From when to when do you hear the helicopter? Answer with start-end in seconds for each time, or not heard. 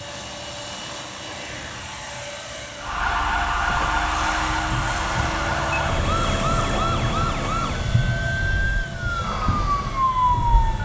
0.0-10.7.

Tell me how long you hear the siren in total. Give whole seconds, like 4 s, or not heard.
8 s.